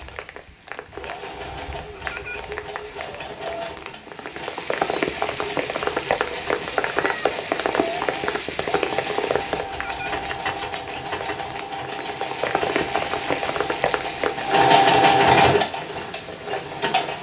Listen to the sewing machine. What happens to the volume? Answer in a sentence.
The volume of the sewing machine goes up.